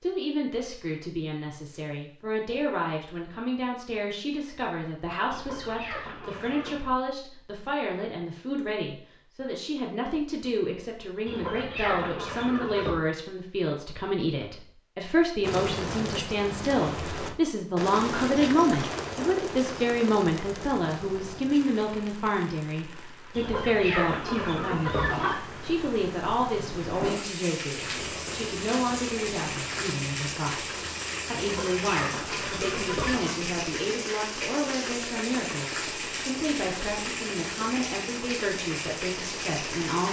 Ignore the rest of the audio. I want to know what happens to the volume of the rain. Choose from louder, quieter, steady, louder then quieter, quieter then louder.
quieter then louder.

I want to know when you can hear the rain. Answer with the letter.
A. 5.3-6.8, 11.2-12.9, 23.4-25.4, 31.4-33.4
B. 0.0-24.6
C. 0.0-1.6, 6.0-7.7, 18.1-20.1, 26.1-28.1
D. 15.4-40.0
D.